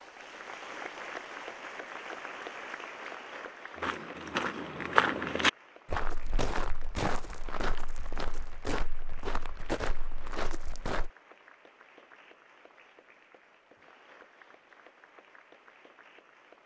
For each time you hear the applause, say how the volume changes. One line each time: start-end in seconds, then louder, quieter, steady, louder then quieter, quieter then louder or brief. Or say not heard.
0.0-16.6 quieter.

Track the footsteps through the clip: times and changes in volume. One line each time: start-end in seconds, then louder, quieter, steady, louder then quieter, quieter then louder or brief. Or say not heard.
3.8-11.1 quieter.